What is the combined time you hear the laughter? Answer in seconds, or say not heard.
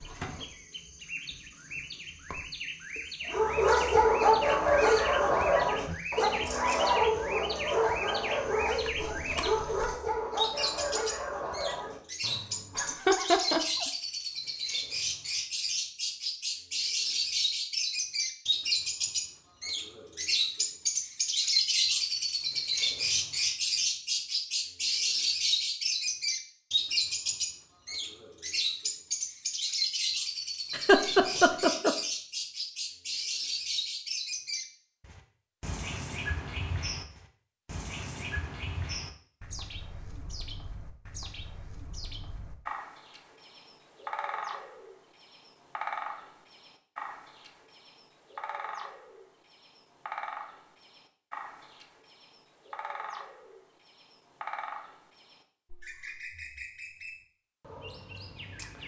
2 s.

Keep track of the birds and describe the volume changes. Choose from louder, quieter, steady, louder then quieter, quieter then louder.
louder then quieter.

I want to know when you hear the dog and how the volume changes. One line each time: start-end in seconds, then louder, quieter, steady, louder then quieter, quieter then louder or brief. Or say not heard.
3.2-13.0 quieter.